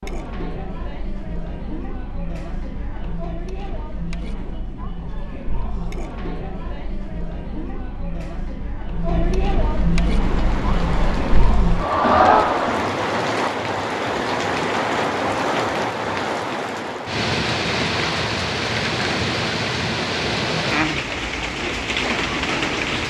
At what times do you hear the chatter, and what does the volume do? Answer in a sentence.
You can hear the chatter from 0.0 to 12.9 s, getting louder.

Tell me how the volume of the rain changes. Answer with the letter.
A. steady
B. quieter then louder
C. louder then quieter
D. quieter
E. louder
E.